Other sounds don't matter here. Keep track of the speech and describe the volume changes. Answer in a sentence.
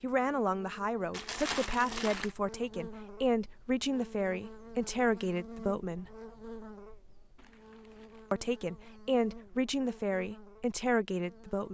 The volume of the speech stays about the same.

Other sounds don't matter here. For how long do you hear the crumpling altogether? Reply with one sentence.
The crumpling can be heard for 2 seconds in total.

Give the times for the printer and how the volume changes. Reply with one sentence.
You can't hear the printer here.